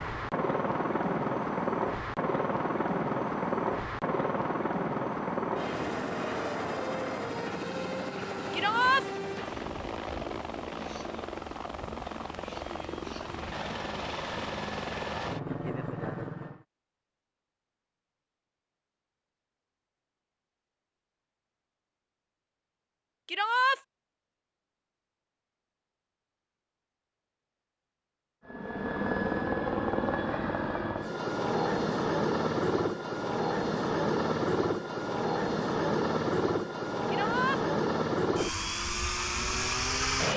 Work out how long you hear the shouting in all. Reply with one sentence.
You can hear the shouting for 2 seconds altogether.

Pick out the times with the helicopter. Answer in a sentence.
The helicopter can be heard from 0.0 to 16.6 s and from 28.4 to 40.3 s.